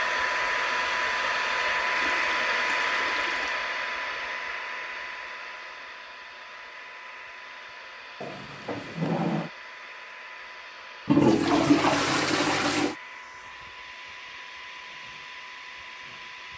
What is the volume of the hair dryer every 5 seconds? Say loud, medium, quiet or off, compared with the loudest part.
loud, quiet, quiet, quiet.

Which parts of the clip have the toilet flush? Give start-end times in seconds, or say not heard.
1.9-3.6, 11.1-12.9.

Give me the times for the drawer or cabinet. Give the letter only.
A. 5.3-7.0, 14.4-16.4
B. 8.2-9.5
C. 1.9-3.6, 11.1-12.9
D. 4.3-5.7
B.